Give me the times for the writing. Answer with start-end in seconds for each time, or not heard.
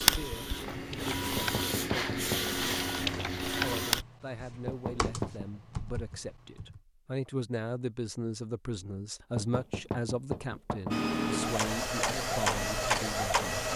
not heard.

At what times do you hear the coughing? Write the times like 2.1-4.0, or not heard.
not heard.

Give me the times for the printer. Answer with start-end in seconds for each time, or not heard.
0.0-4.0, 10.9-13.7.